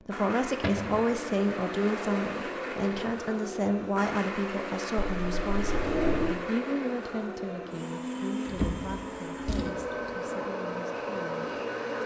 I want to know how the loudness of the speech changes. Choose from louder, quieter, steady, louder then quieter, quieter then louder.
quieter.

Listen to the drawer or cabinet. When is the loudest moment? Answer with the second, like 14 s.
6 s.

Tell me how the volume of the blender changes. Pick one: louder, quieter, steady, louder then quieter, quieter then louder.
steady.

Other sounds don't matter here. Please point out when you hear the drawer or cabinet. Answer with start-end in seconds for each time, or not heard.
0.6-1.1, 5.0-6.3, 8.4-10.2.